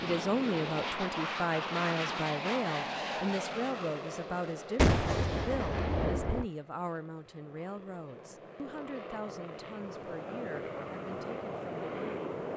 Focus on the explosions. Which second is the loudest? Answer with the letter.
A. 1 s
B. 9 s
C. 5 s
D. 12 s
C.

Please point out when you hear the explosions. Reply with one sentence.
The explosions can be heard from 4.8 to 6.5 s.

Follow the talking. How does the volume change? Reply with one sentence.
The loudness of the talking goes down.